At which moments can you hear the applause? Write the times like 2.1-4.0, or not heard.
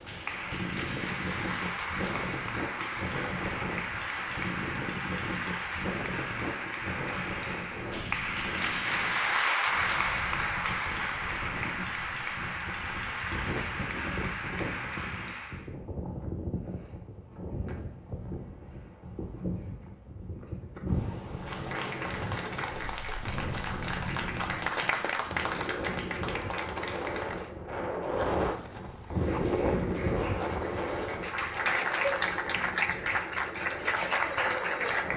0.0-15.7, 21.4-27.5, 29.0-35.1.